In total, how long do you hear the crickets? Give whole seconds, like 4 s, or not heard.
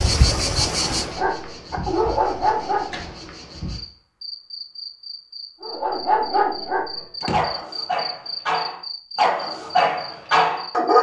11 s.